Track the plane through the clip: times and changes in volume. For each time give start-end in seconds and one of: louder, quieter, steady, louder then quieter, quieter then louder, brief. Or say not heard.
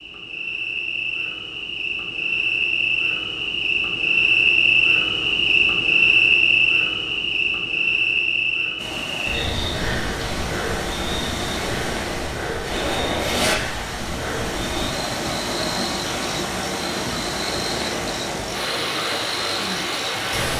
not heard.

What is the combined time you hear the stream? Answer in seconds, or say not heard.
12 s.